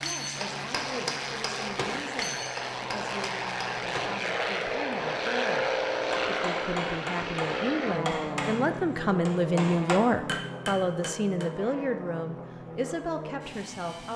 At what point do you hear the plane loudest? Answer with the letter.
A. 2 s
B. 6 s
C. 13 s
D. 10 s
B.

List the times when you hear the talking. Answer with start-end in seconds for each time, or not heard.
0.0-14.1.